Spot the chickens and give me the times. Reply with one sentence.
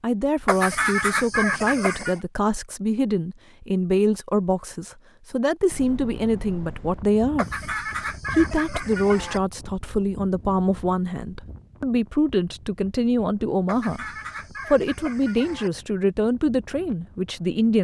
The chickens can be heard from 0.5 to 2.2 s, from 7.3 to 9.4 s and from 13.7 to 15.7 s.